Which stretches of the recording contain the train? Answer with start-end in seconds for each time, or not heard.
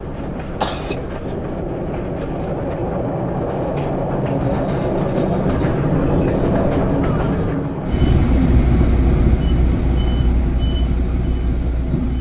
0.0-12.1.